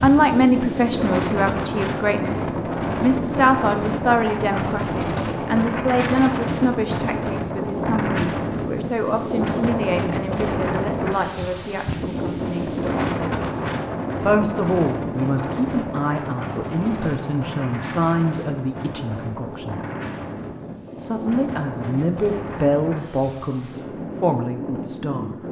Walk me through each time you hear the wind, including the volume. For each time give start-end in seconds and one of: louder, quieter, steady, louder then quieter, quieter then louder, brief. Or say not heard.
0.0-25.4 quieter.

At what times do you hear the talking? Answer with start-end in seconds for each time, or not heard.
0.0-12.8, 14.2-19.8, 21.0-25.4.